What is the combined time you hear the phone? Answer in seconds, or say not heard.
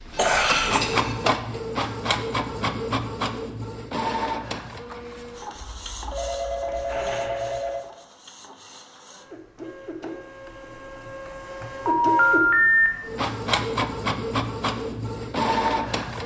4 s.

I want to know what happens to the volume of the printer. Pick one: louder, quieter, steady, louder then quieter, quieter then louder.
quieter then louder.